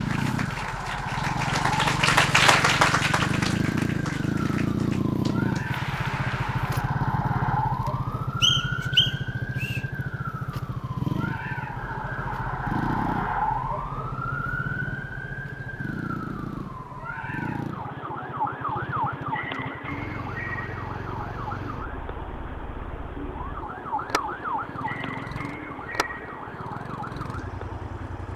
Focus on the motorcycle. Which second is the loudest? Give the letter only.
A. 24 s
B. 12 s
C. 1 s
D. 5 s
D.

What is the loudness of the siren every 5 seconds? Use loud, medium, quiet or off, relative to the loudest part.
loud, loud, loud, loud, loud, medium.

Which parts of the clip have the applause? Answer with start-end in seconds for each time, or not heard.
0.0-6.9.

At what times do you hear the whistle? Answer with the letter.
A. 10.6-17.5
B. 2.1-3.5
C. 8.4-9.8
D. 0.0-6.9
C.